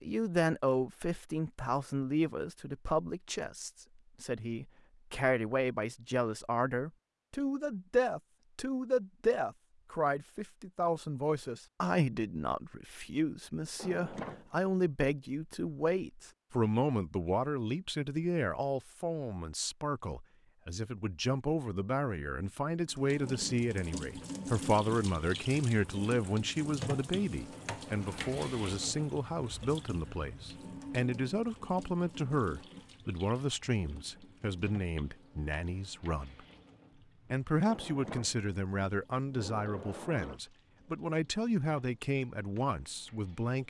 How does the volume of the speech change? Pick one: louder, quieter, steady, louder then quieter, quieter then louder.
steady.